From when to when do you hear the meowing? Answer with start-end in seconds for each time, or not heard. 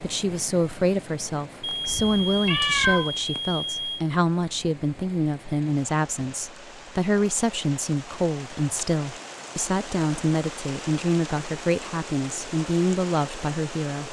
1.9-3.1.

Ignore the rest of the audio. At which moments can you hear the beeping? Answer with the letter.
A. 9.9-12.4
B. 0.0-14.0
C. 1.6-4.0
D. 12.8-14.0
C.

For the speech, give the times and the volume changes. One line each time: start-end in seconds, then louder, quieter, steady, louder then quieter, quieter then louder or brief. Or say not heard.
0.0-14.0 steady.